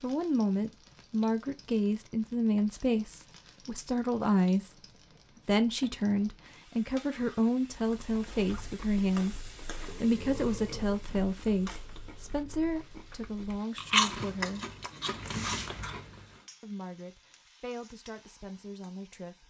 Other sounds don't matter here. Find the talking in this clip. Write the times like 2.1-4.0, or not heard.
0.0-4.7, 5.5-9.4, 10.0-14.8, 16.6-19.4.